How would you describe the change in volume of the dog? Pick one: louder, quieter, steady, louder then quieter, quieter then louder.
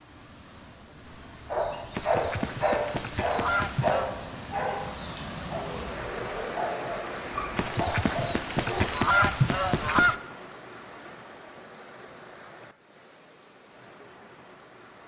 quieter.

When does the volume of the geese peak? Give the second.
9 s.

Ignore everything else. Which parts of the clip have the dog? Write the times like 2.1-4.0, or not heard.
1.5-8.9.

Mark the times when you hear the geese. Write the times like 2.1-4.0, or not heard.
1.9-4.2, 7.5-10.2.